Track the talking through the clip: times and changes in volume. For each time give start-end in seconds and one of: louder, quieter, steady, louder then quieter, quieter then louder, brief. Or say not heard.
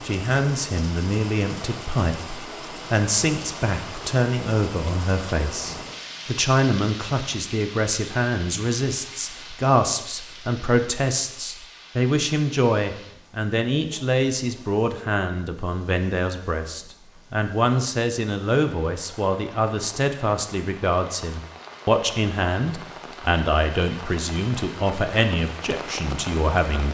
0.0-26.8 steady.